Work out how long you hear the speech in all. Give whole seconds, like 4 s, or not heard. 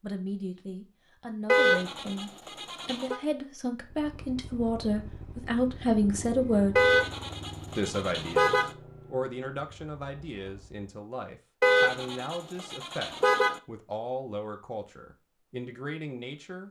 16 s.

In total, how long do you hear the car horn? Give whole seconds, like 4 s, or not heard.
6 s.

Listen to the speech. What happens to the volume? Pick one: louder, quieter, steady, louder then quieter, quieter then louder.
louder then quieter.